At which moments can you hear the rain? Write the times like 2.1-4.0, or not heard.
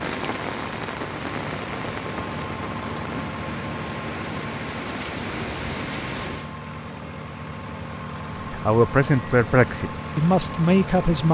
0.0-6.5.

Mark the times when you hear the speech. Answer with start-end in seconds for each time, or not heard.
8.5-11.2.